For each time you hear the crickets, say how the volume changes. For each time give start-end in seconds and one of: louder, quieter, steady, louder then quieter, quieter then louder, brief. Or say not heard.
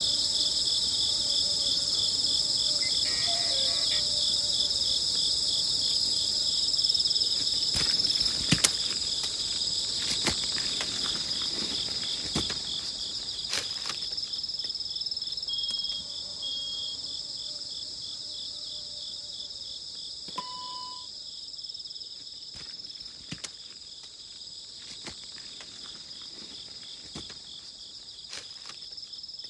0.0-29.4 quieter.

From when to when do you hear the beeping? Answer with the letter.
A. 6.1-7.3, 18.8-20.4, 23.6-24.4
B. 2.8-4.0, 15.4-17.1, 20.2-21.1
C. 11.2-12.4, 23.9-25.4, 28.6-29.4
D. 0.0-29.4
B.